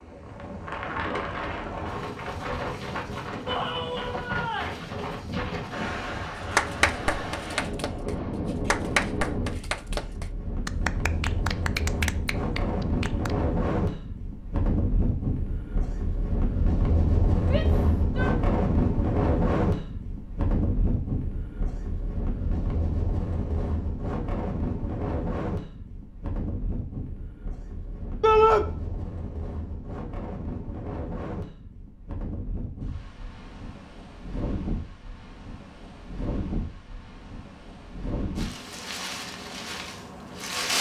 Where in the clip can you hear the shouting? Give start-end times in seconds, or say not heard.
3.5-4.8, 17.4-18.3, 28.2-28.6.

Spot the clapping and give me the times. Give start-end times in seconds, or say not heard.
6.5-13.3.